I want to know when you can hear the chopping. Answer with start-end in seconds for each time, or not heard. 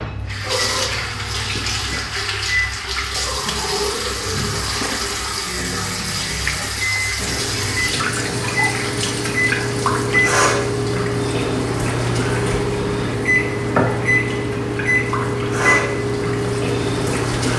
not heard.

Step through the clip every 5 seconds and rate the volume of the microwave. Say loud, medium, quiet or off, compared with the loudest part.
medium, medium, loud, loud.